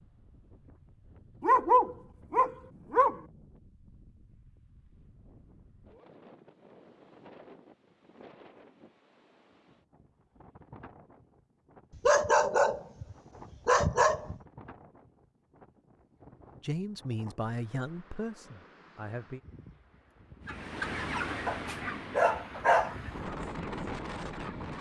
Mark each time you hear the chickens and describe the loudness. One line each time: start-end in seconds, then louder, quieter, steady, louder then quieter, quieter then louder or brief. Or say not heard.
20.4-24.7 quieter.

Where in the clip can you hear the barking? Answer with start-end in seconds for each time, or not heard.
1.4-3.2, 12.1-14.3, 21.4-22.9.